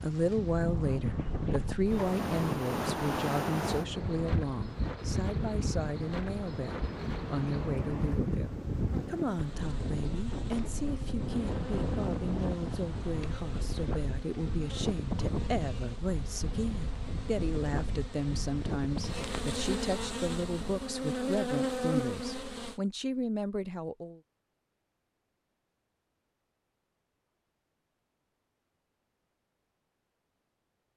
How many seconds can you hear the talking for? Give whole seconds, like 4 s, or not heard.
24 s.